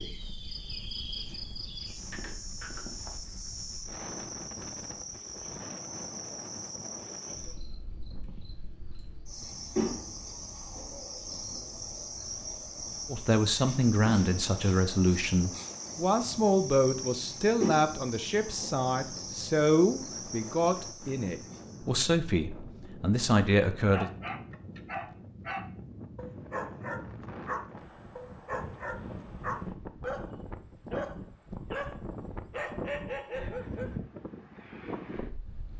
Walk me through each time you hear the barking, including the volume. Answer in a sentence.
You can hear the barking from 23.9 to 34.0 s, at a steady volume.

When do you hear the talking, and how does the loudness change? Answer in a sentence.
You can hear the talking from 13.1 to 24.1 s, at a steady volume.